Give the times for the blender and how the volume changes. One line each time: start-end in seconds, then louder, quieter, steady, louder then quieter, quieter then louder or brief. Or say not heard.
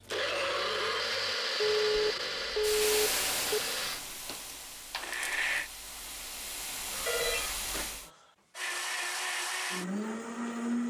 0.0-5.7 quieter
8.6-10.8 brief.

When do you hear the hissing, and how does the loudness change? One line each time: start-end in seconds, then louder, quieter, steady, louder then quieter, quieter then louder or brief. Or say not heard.
2.5-8.1 quieter then louder.